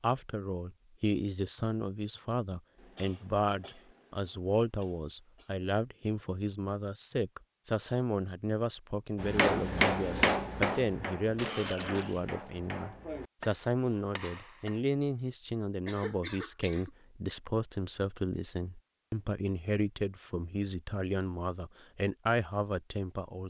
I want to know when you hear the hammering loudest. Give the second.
10 s.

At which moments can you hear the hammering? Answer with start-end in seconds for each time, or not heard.
9.2-14.8.